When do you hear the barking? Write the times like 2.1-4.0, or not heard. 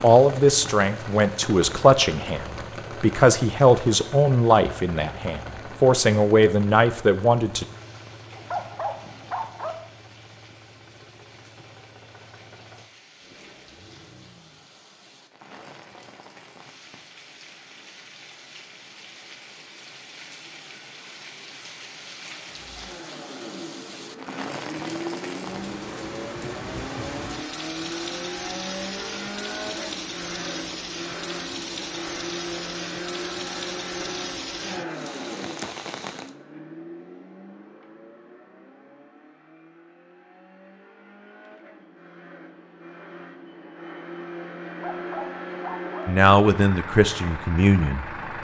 8.3-9.8, 44.6-46.0.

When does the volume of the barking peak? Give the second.
9 s.